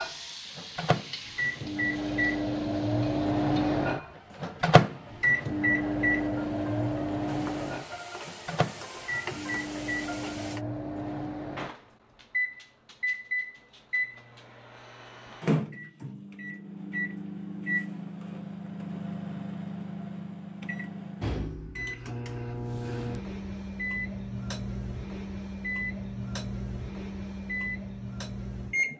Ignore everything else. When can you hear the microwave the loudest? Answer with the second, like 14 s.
5 s.